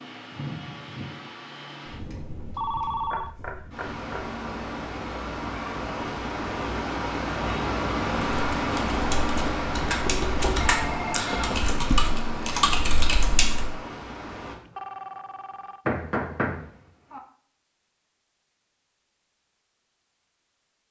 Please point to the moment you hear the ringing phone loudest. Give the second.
3 s.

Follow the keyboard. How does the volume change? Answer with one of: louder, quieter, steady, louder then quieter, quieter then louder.
louder.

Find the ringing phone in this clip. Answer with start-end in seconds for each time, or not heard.
2.5-3.4, 10.7-11.6, 14.6-15.8.